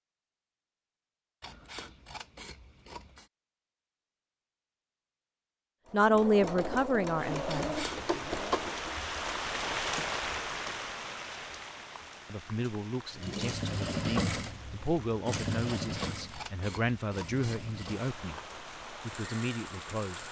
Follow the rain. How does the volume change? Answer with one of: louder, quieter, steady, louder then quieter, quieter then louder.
quieter then louder.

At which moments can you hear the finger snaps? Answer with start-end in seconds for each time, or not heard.
not heard.